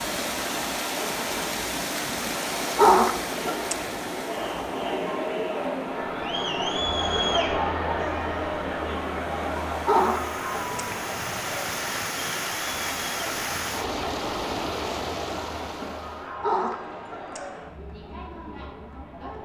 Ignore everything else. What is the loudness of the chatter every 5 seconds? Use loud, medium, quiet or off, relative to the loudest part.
medium, loud, medium, medium.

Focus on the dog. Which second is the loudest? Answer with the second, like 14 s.
3 s.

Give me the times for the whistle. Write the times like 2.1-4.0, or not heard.
not heard.